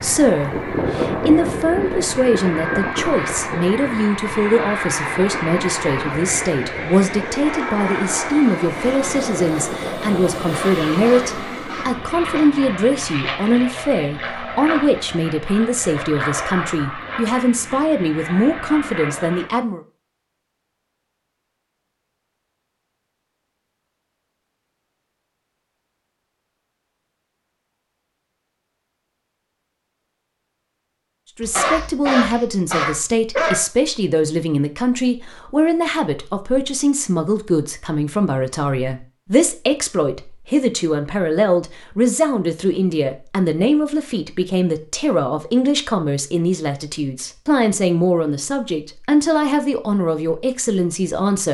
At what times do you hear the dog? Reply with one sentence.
The dog can be heard from 10.4 to 12.5 s and from 31.4 to 33.6 s.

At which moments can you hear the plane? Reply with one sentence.
You can hear the plane from 0.0 to 19.5 s.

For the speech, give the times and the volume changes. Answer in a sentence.
The speech can be heard from 0.0 to 19.8 s, at a steady volume; and from 31.4 to 51.4 s, at a steady volume.